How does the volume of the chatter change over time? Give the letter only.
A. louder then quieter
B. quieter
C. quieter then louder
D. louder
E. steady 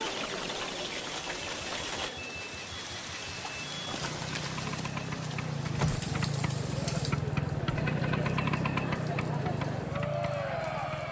C.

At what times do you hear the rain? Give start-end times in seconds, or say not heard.
0.0-11.0.